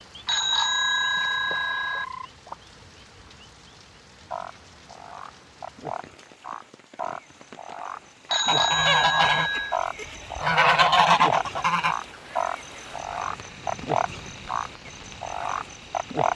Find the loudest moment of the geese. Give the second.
11 s.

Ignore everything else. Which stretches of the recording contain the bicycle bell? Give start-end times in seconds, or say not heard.
0.2-2.0, 8.2-9.8.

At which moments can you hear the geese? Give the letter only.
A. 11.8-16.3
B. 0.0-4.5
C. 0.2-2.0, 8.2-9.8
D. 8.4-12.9
D.